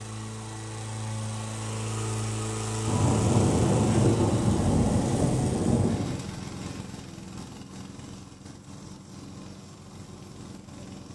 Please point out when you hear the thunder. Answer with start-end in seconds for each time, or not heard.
2.9-6.2.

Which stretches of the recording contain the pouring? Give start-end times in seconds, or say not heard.
not heard.